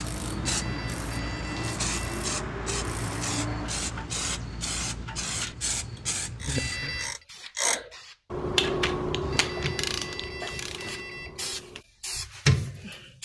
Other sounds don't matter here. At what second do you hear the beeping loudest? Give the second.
7 s.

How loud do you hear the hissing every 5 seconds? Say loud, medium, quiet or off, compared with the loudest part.
loud, medium, loud.